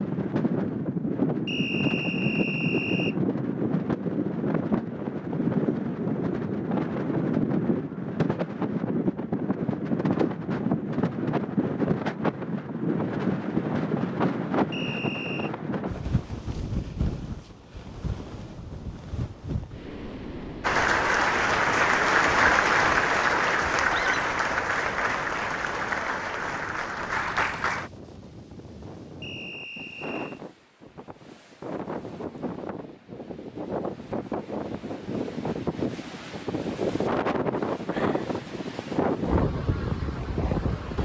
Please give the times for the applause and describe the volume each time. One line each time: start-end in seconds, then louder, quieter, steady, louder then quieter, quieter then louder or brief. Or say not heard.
20.6-27.9 quieter.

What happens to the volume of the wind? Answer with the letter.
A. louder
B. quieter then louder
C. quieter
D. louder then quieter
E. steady
B.